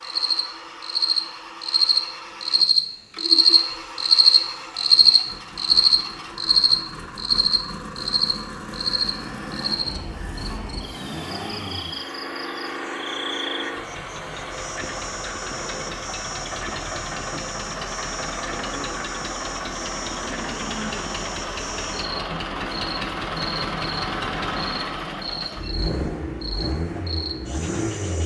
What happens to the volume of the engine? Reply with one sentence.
The loudness of the engine goes up.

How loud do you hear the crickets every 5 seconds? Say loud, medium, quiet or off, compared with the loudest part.
loud, loud, quiet, quiet, quiet, quiet.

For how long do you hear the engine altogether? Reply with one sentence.
The engine can be heard for 28 seconds in total.